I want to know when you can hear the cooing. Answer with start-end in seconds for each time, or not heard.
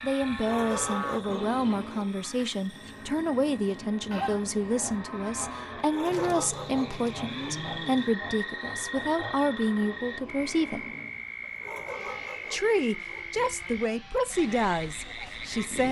not heard.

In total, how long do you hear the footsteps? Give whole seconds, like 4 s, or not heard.
not heard.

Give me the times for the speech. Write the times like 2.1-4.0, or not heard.
0.0-10.8, 12.5-15.8.